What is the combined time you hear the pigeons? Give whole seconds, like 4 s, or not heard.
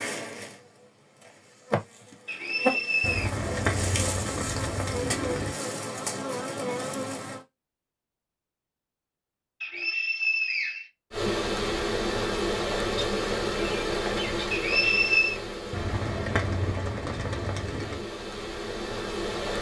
5 s.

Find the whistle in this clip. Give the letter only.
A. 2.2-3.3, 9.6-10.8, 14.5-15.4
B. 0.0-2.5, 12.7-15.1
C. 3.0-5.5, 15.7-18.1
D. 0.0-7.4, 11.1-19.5
A.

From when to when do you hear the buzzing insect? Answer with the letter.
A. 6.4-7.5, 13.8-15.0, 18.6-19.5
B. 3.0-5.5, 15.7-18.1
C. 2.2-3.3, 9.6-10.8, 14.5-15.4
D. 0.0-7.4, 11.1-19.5
D.